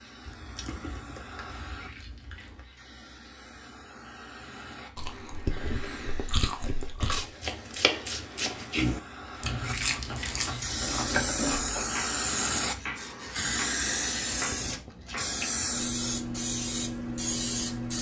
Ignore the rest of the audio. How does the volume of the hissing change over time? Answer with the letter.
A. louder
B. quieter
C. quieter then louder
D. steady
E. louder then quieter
A.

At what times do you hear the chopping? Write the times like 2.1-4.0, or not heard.
7.0-15.4.